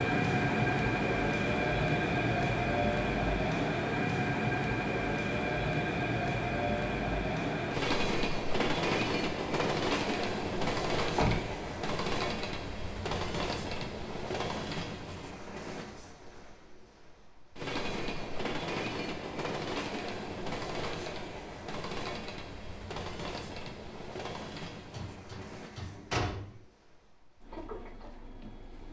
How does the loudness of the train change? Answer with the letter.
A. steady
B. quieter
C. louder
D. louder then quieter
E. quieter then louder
B.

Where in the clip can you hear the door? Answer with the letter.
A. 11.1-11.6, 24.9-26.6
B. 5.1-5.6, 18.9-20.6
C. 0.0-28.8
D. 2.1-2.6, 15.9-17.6
A.